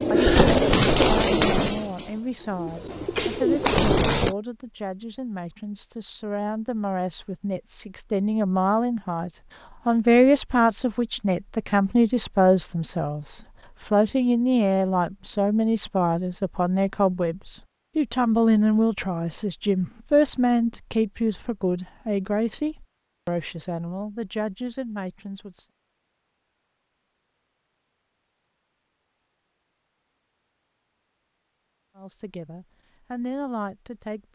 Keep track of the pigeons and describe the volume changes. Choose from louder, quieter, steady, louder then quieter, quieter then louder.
quieter then louder.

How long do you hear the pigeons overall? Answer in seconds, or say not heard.
4 s.